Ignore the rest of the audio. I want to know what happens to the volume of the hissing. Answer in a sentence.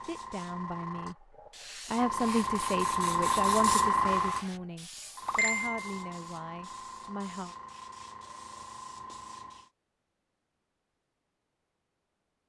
The volume of the hissing goes up, then down.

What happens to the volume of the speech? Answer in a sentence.
The volume of the speech goes up, then down.